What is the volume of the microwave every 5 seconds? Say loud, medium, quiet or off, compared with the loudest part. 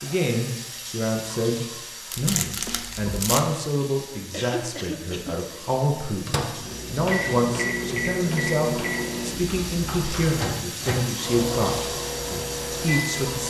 off, loud, loud.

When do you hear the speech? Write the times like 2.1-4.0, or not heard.
0.0-13.4.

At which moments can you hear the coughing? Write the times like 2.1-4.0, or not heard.
4.3-5.4.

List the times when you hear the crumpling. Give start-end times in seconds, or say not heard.
2.1-3.5.